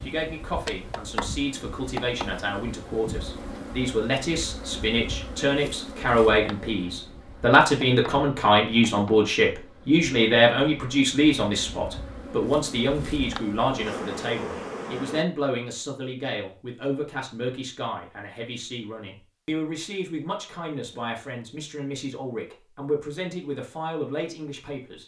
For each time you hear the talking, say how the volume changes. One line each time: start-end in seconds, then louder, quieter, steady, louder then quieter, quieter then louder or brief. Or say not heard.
0.0-25.0 louder then quieter.